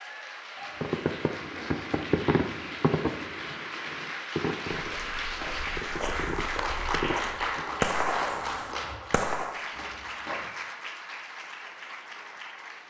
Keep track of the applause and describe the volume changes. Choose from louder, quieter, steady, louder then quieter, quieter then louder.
louder then quieter.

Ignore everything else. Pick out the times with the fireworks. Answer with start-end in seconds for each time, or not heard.
0.8-9.7.